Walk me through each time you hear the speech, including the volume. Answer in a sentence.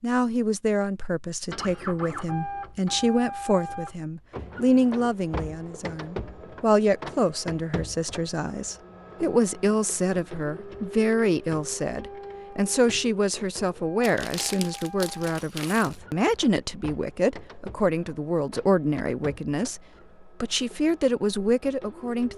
The speech can be heard from 0.0 to 19.8 s, at a steady volume; and briefly from 20.4 to 22.3 s.